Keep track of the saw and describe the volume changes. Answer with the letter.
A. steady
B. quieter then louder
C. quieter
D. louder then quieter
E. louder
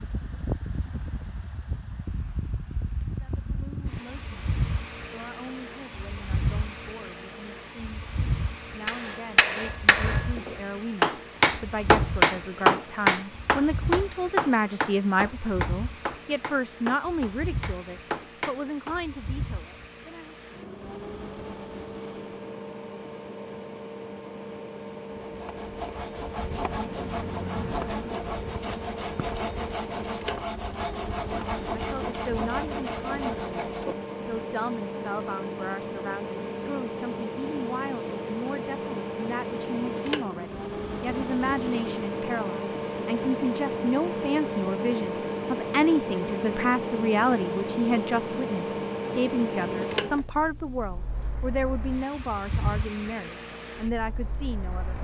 A.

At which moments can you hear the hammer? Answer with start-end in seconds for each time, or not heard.
8.8-18.9.